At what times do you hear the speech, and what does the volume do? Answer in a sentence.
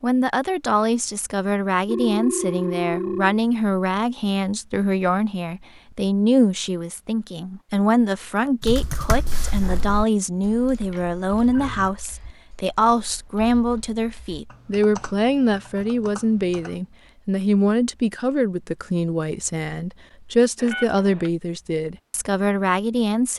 The speech can be heard from 0.0 to 23.3 s, at a steady volume.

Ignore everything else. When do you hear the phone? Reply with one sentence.
The phone can be heard from 1.9 to 3.4 s, from 10.9 to 11.9 s and from 20.6 to 21.3 s.